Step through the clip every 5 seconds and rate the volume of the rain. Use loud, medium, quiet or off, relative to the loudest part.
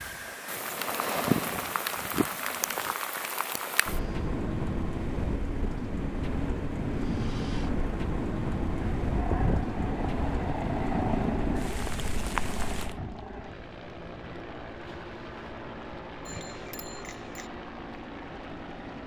loud, loud, loud, quiet.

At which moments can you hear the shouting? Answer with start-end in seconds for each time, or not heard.
not heard.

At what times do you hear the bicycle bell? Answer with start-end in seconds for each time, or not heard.
16.2-17.5.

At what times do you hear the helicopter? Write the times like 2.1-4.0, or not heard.
0.0-4.3, 6.9-19.0.